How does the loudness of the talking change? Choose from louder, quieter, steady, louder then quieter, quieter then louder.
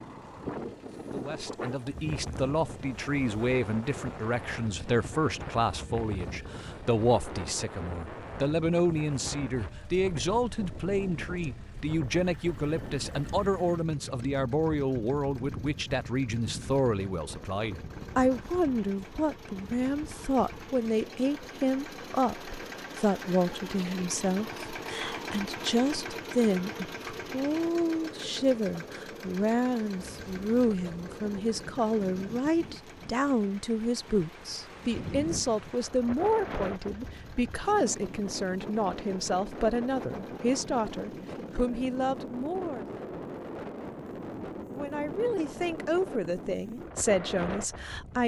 steady.